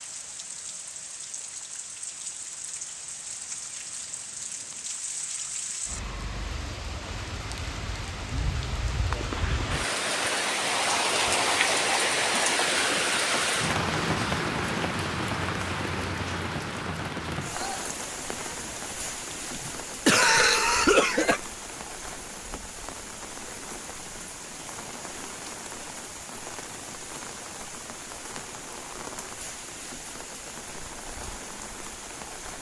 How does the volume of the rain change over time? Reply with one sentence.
The volume of the rain goes up, then down.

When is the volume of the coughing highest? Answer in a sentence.
The volume of the coughing peaks at 20 seconds.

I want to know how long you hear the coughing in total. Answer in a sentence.
You can hear the coughing for 3 seconds altogether.